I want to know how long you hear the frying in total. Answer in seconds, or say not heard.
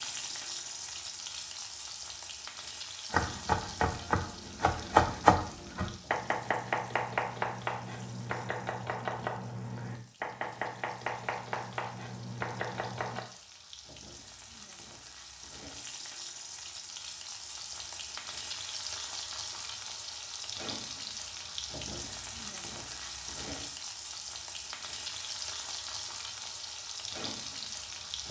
28 s.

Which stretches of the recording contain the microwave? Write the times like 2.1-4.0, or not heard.
not heard.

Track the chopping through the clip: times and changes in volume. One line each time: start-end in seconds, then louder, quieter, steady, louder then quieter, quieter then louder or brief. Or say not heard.
3.1-13.2 quieter.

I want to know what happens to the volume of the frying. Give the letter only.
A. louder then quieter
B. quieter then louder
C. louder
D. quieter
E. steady
B.